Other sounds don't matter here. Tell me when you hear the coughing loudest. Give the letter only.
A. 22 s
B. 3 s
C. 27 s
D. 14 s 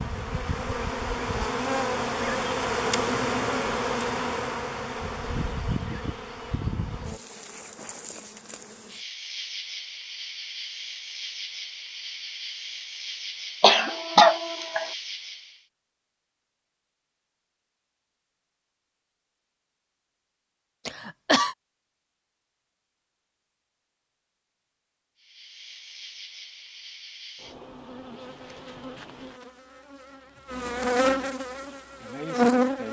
D.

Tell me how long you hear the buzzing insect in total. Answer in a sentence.
The buzzing insect can be heard for 23 seconds in total.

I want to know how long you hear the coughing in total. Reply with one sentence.
You can hear the coughing for 2 seconds altogether.